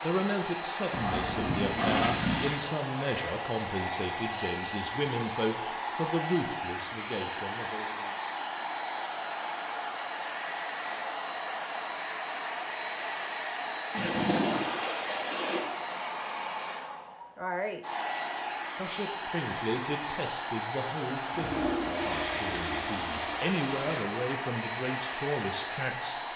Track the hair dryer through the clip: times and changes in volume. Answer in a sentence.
The hair dryer can be heard from 0.0 to 26.3 s, at a steady volume.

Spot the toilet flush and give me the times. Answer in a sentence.
The toilet flush can be heard from 0.9 to 2.6 s, from 13.9 to 15.6 s and from 21.3 to 24.1 s.